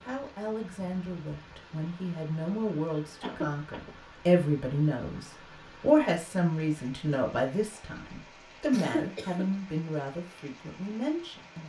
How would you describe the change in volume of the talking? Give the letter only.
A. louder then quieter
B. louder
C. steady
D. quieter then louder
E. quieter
A.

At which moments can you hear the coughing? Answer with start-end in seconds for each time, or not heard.
3.2-3.9, 8.7-9.5.